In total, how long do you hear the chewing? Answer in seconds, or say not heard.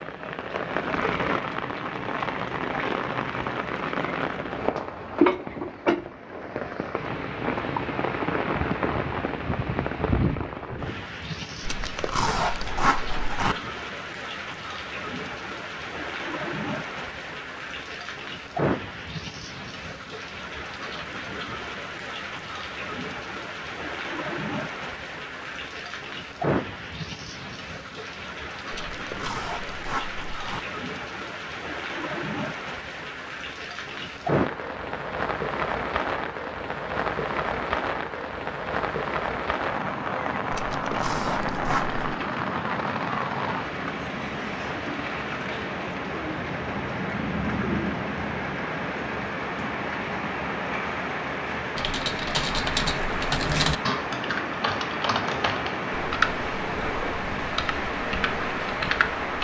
5 s.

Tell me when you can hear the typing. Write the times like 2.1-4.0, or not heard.
51.8-59.3.